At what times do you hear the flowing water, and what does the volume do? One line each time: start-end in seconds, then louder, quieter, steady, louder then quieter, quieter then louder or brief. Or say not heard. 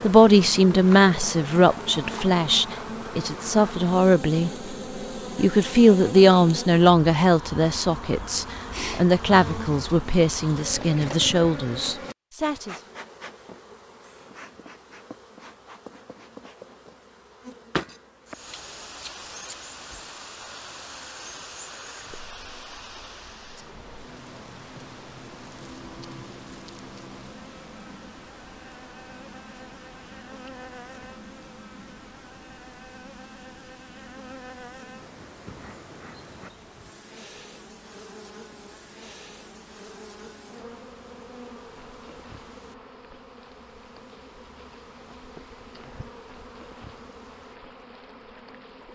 18.2-48.9 quieter.